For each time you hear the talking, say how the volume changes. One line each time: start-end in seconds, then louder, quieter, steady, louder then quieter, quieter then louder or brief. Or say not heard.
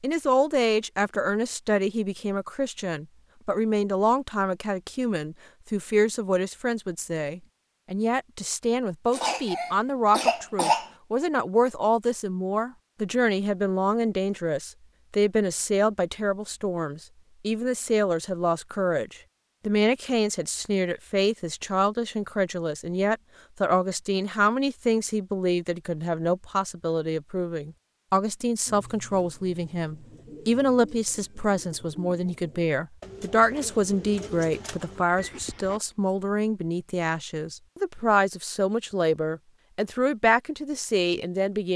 0.0-41.7 steady.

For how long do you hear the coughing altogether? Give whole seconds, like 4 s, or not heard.
2 s.